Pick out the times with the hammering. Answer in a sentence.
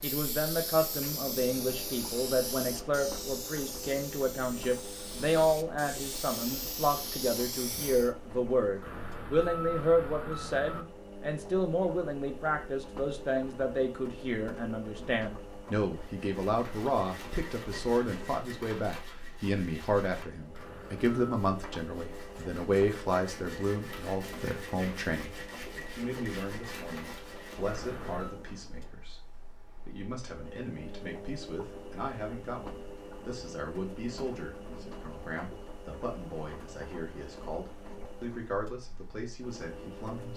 The hammering can't be heard in this clip.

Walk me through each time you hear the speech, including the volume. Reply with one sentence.
You can hear the speech from 0.0 to 40.3 s, getting quieter.